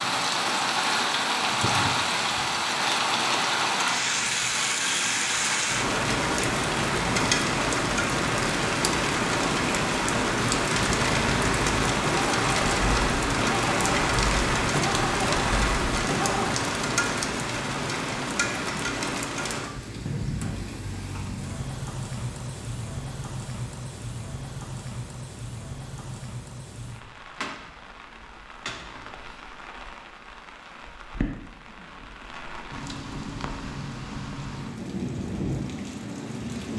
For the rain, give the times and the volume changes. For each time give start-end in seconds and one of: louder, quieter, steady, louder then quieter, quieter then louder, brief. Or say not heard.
0.0-36.7 quieter.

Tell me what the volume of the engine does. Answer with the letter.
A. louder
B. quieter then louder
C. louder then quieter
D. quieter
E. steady
E.